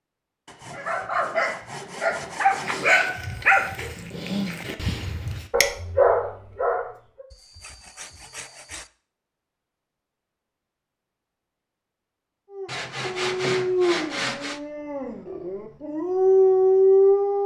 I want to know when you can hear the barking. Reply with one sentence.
The barking can be heard from 0.7 to 7.2 s and from 12.5 to 17.4 s.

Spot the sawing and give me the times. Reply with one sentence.
The sawing can be heard from 0.5 to 3.0 s, from 7.3 to 8.9 s and from 12.7 to 14.6 s.